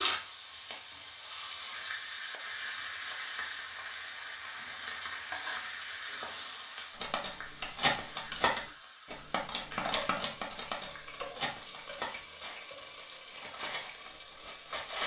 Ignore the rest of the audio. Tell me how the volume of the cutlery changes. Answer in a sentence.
The loudness of the cutlery goes down.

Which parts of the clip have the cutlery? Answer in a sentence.
You can hear the cutlery from 7.0 to 15.0 s.